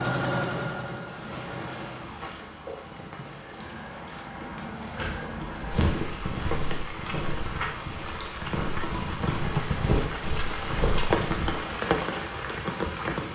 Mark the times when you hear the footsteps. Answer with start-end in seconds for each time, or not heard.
5.6-11.6.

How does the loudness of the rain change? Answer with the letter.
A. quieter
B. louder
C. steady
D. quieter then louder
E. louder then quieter
B.